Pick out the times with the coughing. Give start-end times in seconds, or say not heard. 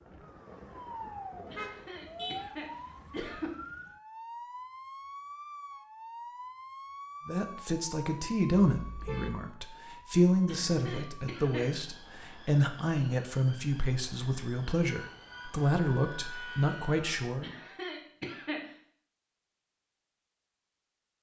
1.5-3.5, 10.4-11.7, 17.4-18.7.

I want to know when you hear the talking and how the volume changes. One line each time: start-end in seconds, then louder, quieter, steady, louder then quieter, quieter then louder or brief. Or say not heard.
7.2-17.5 steady.